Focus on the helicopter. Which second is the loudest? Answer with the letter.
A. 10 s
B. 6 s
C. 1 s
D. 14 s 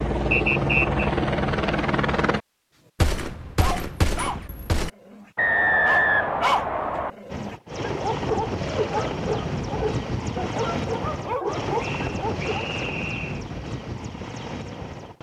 C.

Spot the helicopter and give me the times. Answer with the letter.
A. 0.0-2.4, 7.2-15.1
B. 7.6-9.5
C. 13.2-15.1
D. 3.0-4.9
A.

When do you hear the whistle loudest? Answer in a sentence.
The loudest moment of the whistle is at 6 seconds.